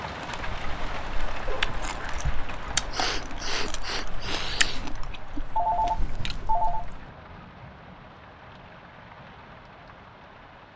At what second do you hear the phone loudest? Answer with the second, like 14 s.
6 s.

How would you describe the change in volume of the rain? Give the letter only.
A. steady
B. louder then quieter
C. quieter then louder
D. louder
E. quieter
E.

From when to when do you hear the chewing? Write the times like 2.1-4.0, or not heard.
0.2-7.0.